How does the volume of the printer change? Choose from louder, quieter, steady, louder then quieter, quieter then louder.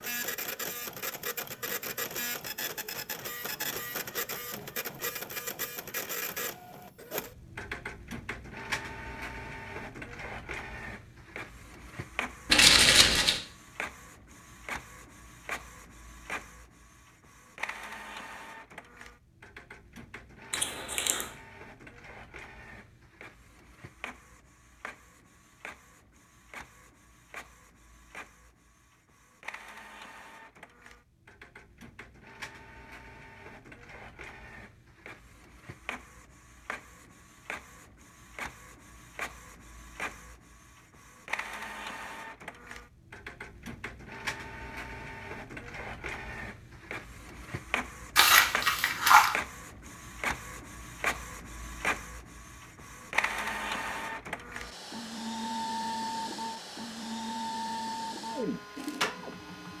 quieter then louder.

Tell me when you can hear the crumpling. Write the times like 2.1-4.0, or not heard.
12.5-13.4, 20.5-21.2, 48.1-49.4.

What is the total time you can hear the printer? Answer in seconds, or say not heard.
60 s.